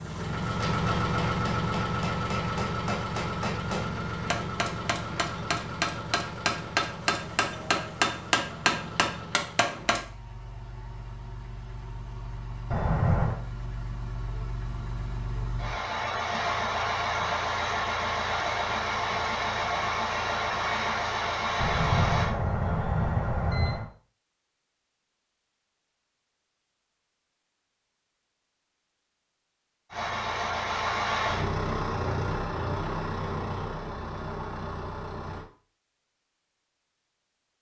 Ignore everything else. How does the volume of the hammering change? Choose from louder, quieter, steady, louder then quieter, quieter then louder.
louder.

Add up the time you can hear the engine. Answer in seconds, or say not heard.
28 s.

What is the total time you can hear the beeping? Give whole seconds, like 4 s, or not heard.
3 s.